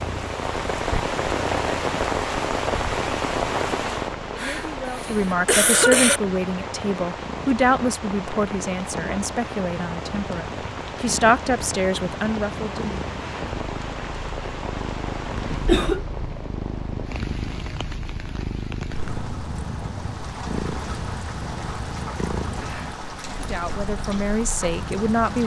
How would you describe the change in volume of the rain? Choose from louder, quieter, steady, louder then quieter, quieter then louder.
quieter.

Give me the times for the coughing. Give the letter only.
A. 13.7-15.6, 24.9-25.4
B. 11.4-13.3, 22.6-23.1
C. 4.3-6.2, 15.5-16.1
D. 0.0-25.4
C.